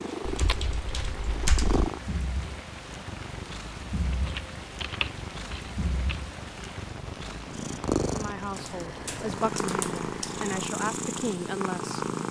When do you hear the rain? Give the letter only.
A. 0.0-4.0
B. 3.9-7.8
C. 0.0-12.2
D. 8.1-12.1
C.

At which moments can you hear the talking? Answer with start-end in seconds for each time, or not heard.
8.1-12.1.